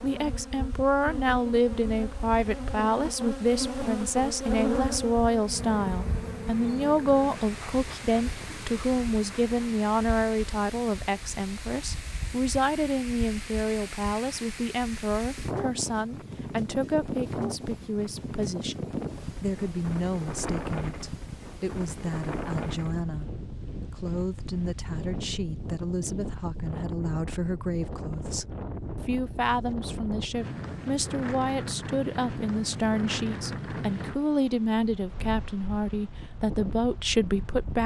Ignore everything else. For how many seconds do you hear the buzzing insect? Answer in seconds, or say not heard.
10 s.